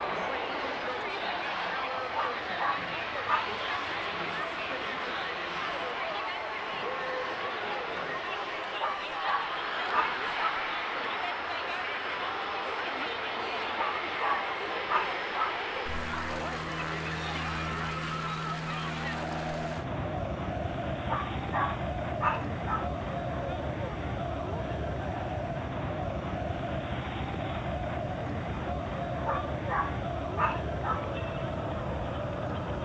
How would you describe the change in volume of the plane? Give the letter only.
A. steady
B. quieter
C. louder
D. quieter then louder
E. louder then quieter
A.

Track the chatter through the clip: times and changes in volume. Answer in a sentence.
You can hear the chatter from 0.0 to 32.8 s, at a steady volume.